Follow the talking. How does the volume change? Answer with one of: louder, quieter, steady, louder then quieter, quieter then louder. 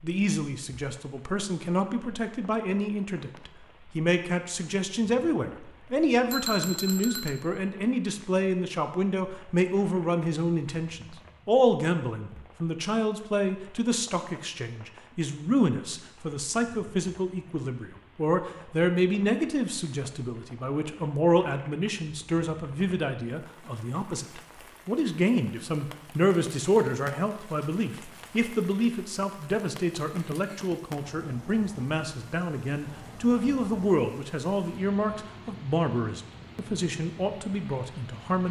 steady.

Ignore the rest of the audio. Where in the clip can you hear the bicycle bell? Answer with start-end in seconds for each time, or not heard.
6.3-7.4.